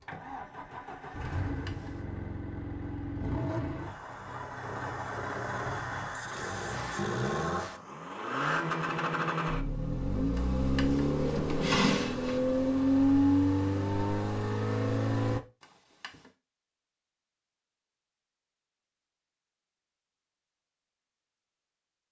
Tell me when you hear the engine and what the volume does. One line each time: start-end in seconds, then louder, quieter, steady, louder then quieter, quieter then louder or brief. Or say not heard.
0.0-15.4 louder.